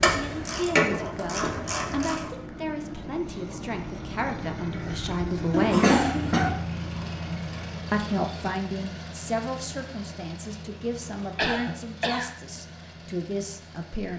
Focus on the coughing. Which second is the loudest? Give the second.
6 s.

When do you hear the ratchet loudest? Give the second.
1 s.